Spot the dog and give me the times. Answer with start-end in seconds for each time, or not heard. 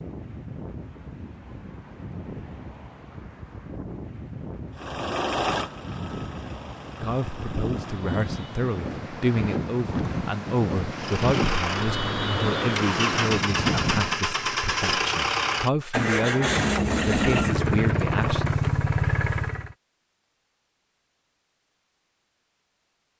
not heard.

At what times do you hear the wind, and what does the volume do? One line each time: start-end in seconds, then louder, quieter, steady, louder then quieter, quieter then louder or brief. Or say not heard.
0.0-14.2 louder.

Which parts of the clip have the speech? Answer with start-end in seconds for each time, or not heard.
7.0-18.5.